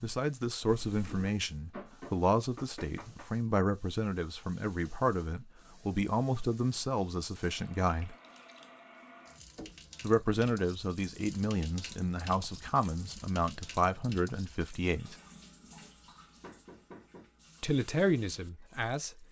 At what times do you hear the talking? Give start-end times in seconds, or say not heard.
0.0-8.2, 10.0-15.2, 17.6-19.1.